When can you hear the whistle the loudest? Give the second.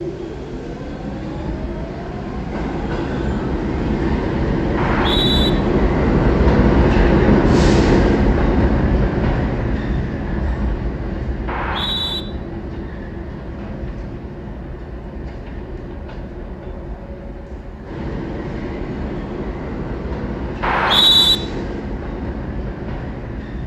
21 s.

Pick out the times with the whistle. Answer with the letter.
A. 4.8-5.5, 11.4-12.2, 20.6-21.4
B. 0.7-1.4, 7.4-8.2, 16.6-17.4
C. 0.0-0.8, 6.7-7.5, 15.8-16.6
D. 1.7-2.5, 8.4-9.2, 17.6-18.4
A.